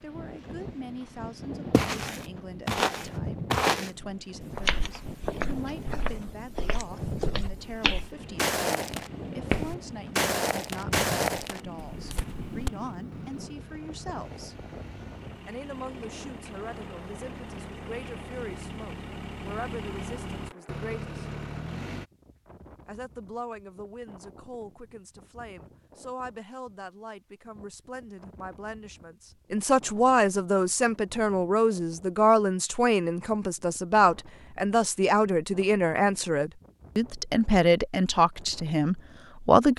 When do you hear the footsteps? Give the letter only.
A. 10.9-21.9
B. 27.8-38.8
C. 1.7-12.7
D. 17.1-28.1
C.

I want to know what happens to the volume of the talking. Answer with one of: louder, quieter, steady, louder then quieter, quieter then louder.
louder.